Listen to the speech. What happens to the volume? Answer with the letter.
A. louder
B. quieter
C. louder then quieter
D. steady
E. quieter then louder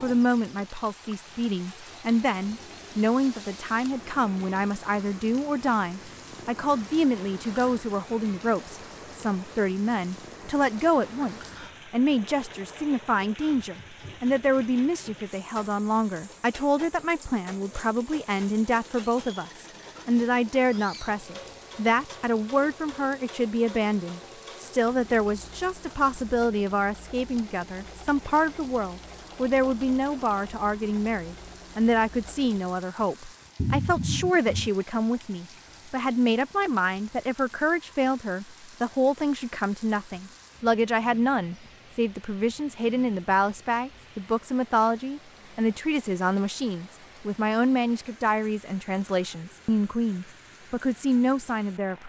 D.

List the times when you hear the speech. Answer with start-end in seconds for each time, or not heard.
0.0-52.0.